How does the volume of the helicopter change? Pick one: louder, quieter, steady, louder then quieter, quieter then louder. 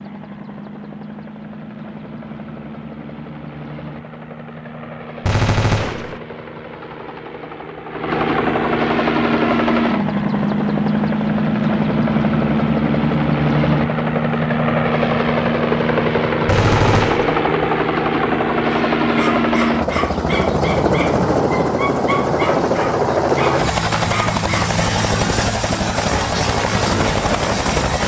louder.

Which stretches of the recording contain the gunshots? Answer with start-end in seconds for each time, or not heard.
5.2-6.2, 16.4-17.4.